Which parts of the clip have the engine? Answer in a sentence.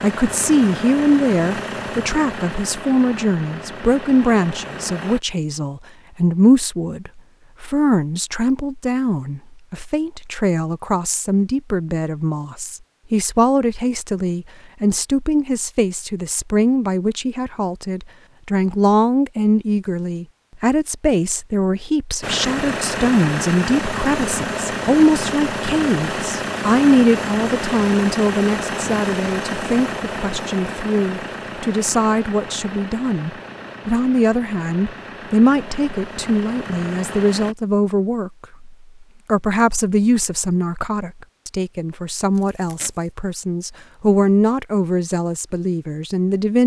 The engine can be heard from 0.0 to 5.2 s and from 22.2 to 37.5 s.